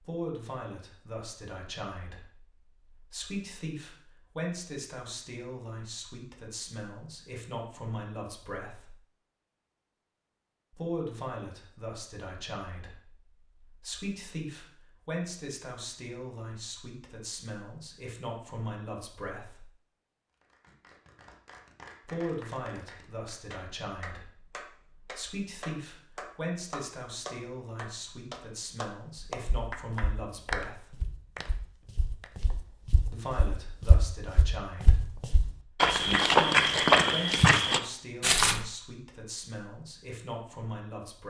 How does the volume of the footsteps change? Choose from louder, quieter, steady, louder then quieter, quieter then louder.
louder.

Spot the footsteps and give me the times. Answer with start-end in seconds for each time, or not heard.
29.4-38.6.